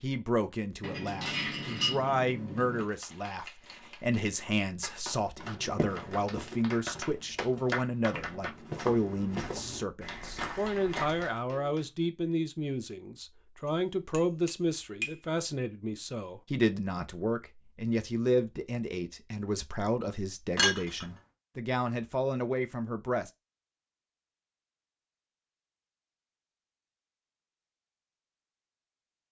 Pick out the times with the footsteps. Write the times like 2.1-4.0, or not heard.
5.3-11.3.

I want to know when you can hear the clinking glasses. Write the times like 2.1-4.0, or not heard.
0.8-2.9, 13.7-15.1, 20.6-21.1.